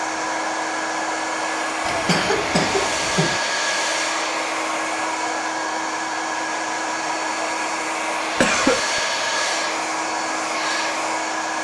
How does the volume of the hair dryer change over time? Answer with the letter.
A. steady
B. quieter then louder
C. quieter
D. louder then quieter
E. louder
A.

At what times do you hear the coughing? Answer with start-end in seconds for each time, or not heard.
1.9-3.4, 8.4-8.8.